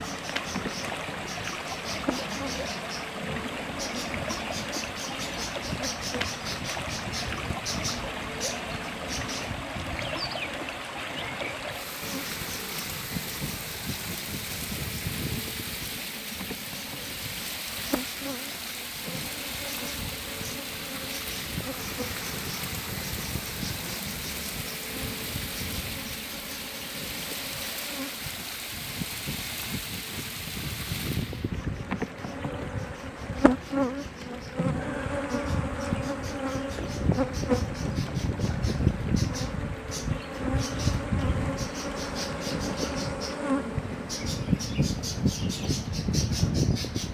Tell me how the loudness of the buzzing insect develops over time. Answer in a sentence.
The volume of the buzzing insect goes up.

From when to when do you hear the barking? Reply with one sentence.
The barking can't be heard in this clip.